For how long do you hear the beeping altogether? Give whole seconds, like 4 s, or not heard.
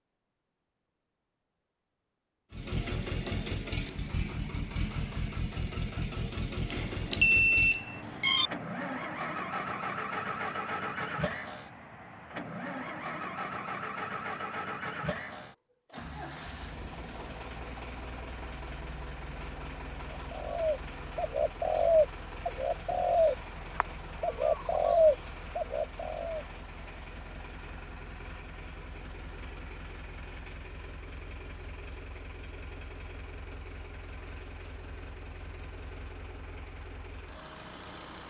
2 s.